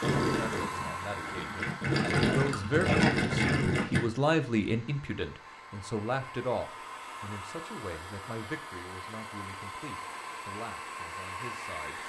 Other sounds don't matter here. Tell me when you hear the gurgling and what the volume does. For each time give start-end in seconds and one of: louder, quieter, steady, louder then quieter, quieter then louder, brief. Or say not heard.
0.0-4.0 louder.